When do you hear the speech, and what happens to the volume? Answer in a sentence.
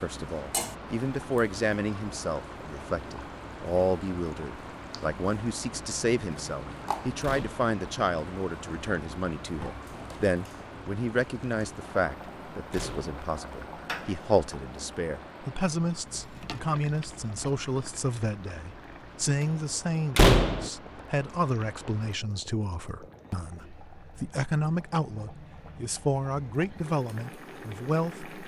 The speech can be heard from 0.0 to 28.3 s, at a steady volume.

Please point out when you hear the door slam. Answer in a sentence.
You can hear the door slam from 7.2 to 7.7 s, from 12.7 to 13.2 s and from 20.1 to 20.7 s.